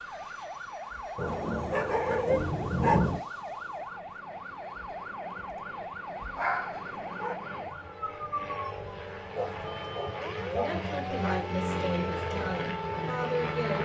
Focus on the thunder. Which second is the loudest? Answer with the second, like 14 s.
3 s.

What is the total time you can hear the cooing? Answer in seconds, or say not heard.
not heard.